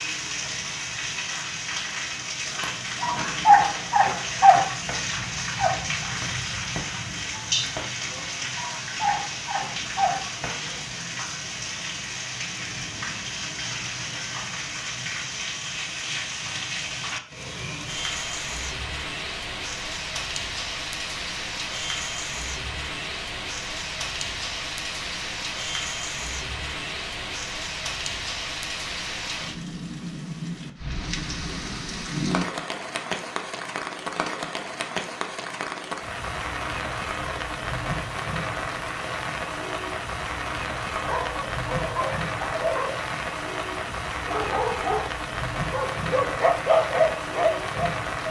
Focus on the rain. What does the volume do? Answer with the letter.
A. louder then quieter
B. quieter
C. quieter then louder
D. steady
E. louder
D.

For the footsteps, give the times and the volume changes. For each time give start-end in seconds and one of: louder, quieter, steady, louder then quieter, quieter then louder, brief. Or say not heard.
not heard.